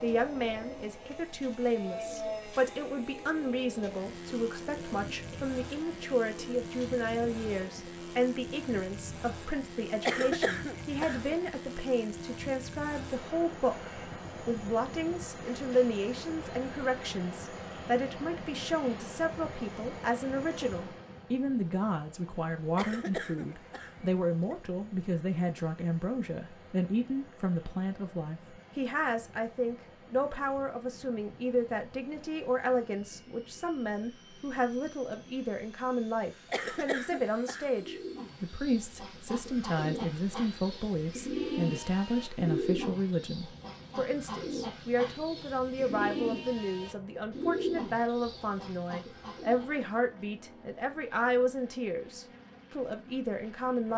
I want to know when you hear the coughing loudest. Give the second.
10 s.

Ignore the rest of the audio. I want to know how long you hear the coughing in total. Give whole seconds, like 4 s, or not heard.
5 s.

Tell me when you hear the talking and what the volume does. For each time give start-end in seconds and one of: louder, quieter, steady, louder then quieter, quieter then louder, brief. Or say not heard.
0.0-53.9 steady.